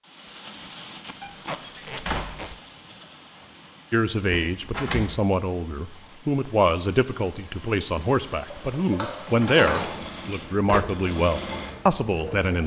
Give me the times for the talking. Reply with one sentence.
You can hear the talking from 3.9 to 12.6 s.